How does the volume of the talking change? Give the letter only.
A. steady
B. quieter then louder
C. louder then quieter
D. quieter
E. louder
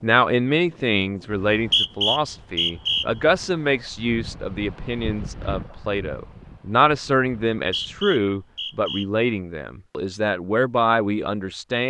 A.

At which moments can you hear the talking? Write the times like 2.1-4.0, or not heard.
0.0-11.8.